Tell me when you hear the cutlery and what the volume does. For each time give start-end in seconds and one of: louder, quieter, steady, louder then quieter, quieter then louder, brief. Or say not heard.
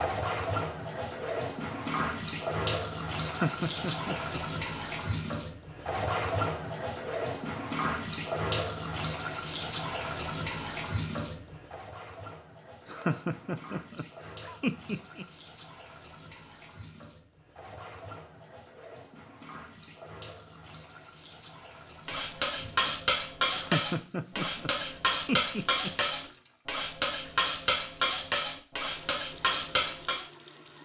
22.1-30.2 steady.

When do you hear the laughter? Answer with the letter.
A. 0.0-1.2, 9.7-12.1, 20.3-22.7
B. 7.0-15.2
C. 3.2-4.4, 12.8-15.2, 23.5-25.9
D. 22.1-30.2
C.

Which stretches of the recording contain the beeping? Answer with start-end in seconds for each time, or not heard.
not heard.